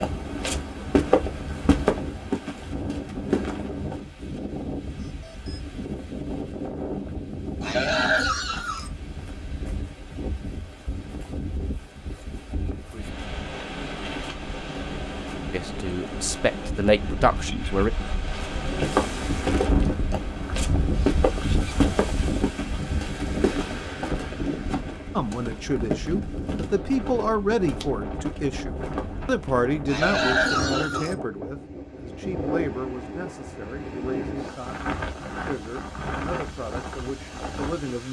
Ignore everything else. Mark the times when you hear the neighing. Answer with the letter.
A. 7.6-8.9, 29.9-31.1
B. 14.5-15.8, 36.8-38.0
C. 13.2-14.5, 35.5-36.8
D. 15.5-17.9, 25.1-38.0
A.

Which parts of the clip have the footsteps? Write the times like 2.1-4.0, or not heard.
0.0-4.0, 18.6-29.7.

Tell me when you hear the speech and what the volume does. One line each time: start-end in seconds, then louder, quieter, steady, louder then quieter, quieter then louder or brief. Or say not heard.
15.5-17.9 brief
25.1-38.0 quieter.